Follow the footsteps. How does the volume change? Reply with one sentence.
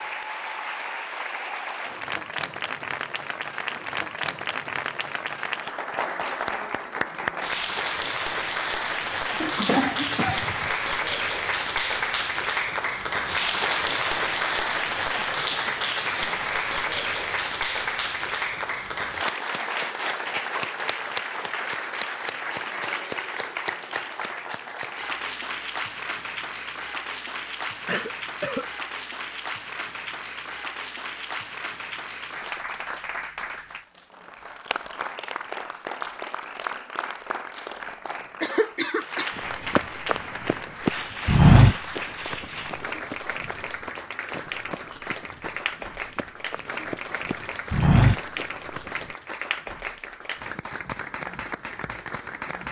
The loudness of the footsteps goes down, then up.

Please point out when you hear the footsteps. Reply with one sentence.
The footsteps can be heard from 39.4 to 48.9 s.